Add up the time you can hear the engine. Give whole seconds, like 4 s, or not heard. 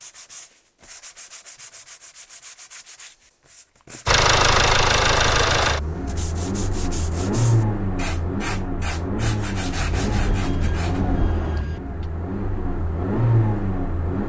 10 s.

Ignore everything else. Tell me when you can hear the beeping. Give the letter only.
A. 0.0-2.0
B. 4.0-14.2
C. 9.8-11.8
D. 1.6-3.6
C.